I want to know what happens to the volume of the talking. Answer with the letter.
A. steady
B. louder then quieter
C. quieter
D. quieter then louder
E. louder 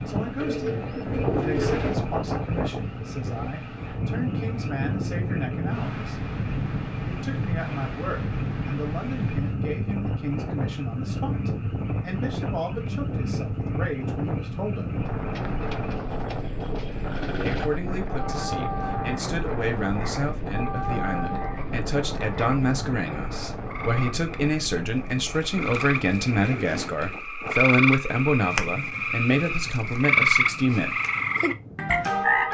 E.